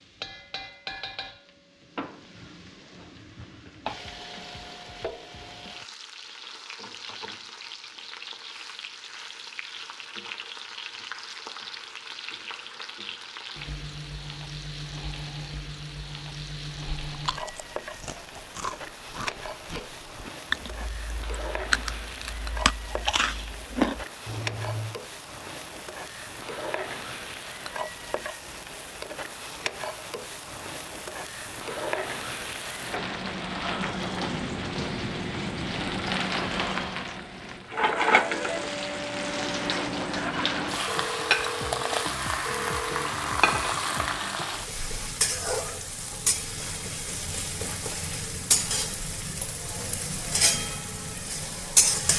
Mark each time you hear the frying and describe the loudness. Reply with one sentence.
The frying can be heard from 0.0 to 52.1 s, getting louder.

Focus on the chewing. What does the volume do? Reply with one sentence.
The volume of the chewing goes up.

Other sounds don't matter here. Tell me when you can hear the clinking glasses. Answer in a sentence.
You can't hear the clinking glasses here.